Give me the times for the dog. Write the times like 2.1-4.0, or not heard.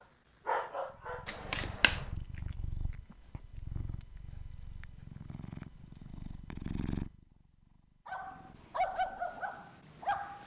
0.5-1.4, 8.1-10.4.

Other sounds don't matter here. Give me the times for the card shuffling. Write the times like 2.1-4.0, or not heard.
1.2-2.0.